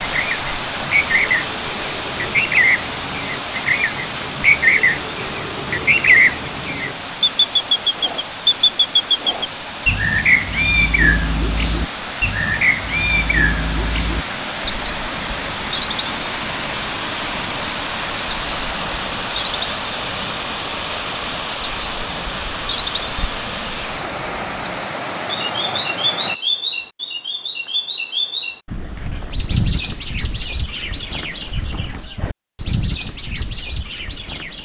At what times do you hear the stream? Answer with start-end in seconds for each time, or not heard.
0.0-26.4.